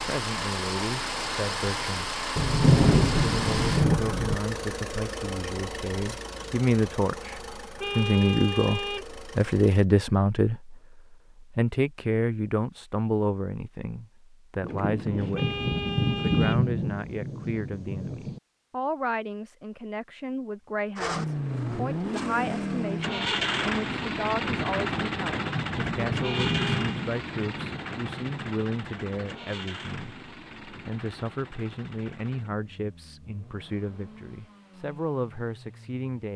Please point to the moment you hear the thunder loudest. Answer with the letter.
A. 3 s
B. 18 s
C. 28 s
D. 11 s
A.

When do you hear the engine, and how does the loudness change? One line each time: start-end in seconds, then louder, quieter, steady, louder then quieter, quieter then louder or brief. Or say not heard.
0.0-9.8 quieter
20.9-36.0 quieter.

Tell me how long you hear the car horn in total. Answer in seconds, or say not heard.
3 s.